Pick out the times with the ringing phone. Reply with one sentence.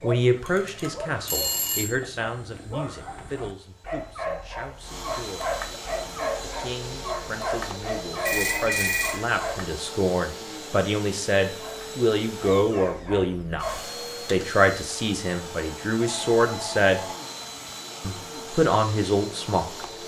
You can hear the ringing phone from 0.5 to 1.9 s, from 8.2 to 9.2 s and from 16.0 to 17.2 s.